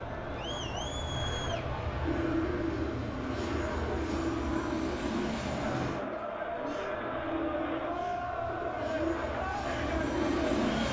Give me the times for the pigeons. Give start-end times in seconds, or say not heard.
2.0-10.8.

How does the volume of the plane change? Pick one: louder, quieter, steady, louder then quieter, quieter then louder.
quieter then louder.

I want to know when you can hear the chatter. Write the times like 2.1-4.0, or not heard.
0.0-10.8.